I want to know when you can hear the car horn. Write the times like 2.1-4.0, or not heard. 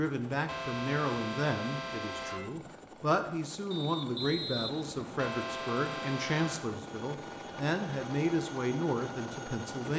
0.5-2.5, 5.2-6.7.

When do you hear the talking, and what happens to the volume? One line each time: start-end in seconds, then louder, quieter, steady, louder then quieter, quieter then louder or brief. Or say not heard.
0.0-9.9 steady.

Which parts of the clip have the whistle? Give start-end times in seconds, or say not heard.
3.7-5.3.